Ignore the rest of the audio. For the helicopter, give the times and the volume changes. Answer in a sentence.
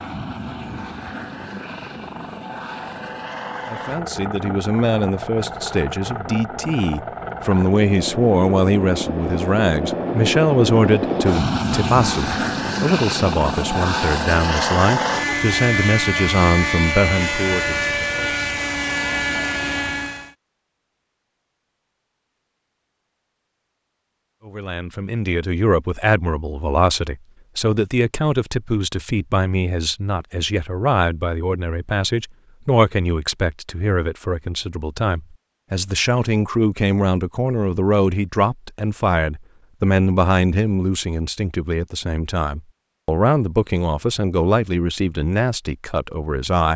The helicopter can be heard from 0.0 to 20.3 s, getting louder.